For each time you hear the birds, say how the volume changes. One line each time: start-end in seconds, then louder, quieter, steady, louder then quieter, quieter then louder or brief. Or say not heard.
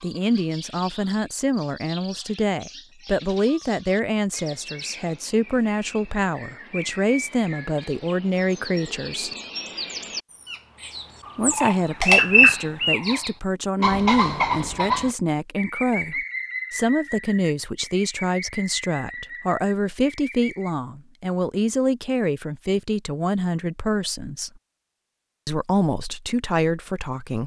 0.0-20.8 louder then quieter.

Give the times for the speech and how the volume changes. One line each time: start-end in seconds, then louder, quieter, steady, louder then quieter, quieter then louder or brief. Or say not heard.
0.0-9.3 steady
11.3-24.5 steady
25.4-27.4 brief.